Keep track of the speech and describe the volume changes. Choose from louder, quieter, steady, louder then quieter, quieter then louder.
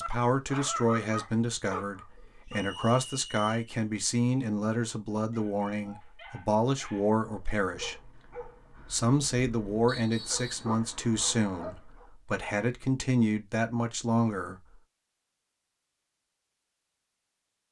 steady.